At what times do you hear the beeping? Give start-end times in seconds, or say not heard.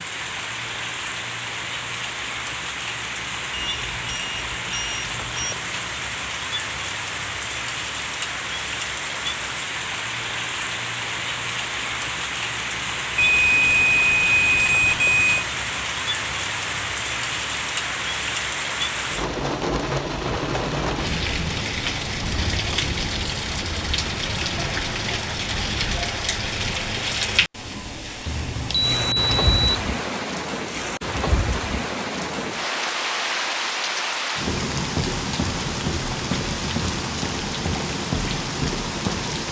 3.5-5.5, 13.2-15.4, 28.2-29.9.